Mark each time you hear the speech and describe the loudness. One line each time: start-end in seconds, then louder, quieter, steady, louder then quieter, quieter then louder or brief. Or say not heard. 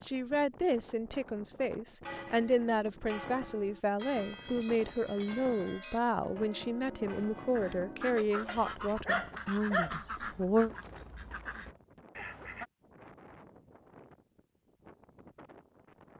0.0-10.7 steady.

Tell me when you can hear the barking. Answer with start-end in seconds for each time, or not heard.
8.4-10.0.